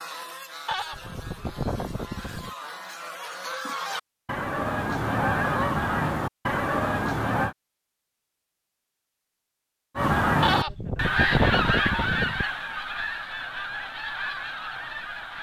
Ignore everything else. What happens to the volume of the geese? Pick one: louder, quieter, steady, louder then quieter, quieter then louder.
louder then quieter.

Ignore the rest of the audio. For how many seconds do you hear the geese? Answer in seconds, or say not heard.
13 s.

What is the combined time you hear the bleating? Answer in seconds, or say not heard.
4 s.